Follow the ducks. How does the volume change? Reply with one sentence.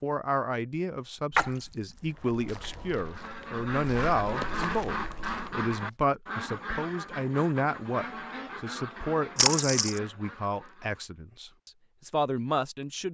The loudness of the ducks goes down.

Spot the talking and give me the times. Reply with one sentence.
You can hear the talking from 0.0 to 13.1 s.